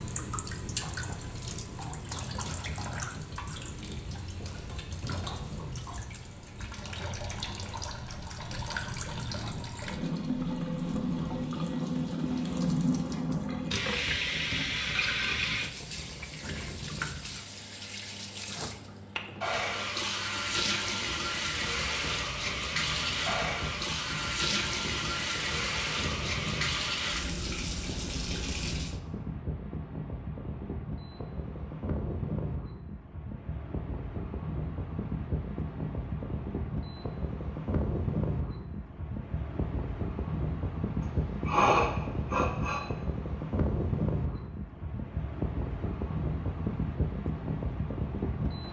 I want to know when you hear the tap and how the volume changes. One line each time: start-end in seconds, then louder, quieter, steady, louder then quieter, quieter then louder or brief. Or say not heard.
0.0-29.0 louder.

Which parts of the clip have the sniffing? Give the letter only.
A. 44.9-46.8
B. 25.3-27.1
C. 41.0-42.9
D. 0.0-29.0
C.